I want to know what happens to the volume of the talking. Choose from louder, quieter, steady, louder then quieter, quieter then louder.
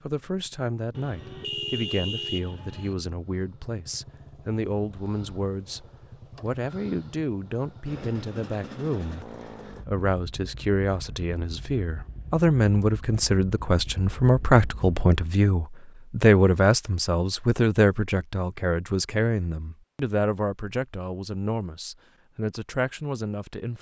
louder then quieter.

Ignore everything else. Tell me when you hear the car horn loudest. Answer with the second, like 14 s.
2 s.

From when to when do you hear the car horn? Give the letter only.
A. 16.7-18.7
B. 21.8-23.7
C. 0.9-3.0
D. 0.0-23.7
C.